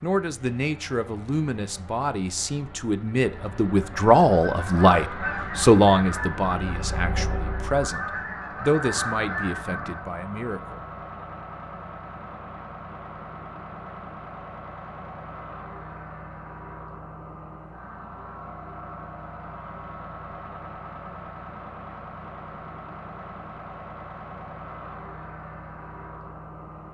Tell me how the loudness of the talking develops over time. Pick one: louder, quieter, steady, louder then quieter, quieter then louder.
louder then quieter.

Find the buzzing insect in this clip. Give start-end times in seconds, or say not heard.
not heard.